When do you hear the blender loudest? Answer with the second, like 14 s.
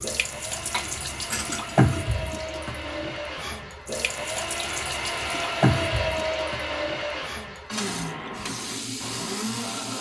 6 s.